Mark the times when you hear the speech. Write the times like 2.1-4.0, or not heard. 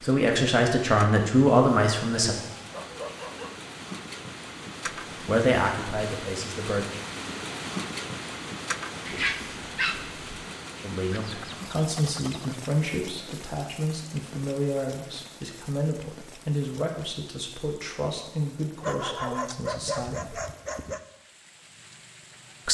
0.0-2.4, 5.2-6.8, 10.8-20.4.